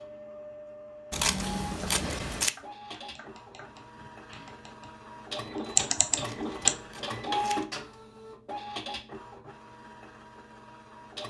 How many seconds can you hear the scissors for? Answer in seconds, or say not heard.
3 s.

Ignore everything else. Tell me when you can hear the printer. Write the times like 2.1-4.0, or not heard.
0.0-11.2.